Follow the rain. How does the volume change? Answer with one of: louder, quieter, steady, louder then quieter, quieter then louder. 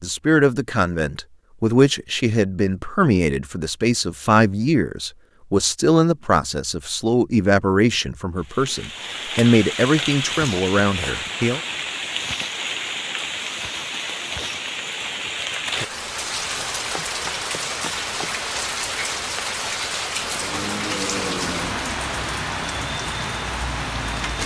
steady.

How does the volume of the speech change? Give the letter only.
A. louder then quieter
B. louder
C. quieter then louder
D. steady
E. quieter
D.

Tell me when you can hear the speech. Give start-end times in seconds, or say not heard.
0.0-11.6.